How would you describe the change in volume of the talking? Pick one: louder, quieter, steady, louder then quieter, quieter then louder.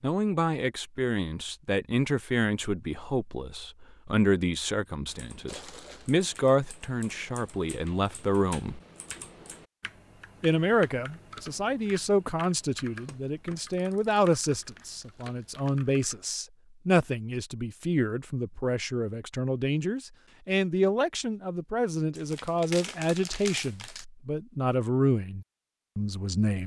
steady.